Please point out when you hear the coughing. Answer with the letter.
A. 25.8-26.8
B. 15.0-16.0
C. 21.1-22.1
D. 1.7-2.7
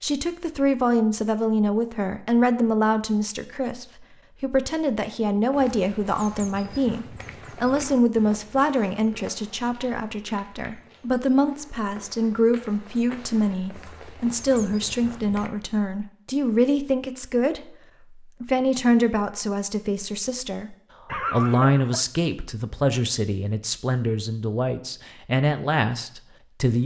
C.